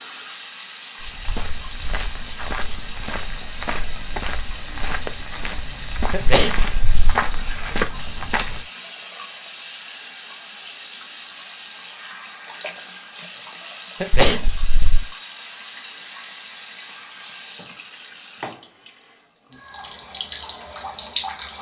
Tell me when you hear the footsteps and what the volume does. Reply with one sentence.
The footsteps can be heard from 1.0 to 8.7 s, getting louder.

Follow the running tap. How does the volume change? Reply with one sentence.
The loudness of the running tap stays about the same.